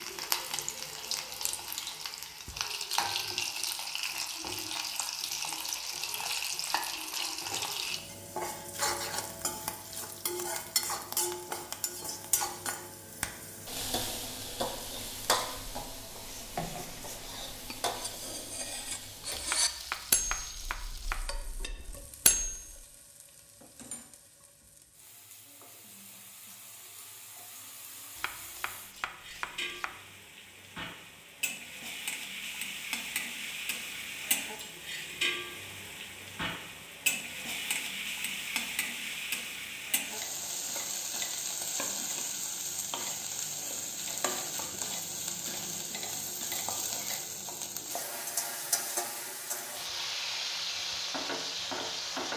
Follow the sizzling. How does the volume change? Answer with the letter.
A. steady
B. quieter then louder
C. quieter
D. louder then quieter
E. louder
B.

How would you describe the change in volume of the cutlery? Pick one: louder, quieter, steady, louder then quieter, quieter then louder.
louder then quieter.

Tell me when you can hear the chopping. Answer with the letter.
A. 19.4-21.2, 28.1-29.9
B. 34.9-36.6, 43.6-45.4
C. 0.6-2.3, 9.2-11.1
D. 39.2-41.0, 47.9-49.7
A.